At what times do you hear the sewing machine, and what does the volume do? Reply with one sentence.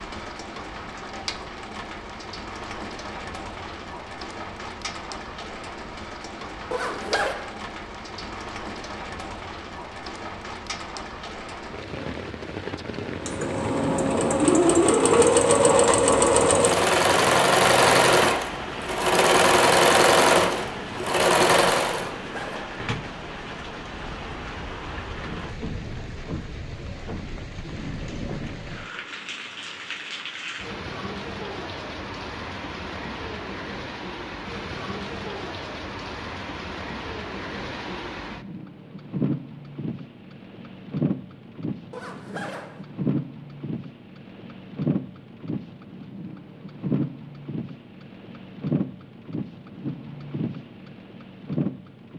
You can hear the sewing machine from 13.2 to 22.1 s, at a steady volume.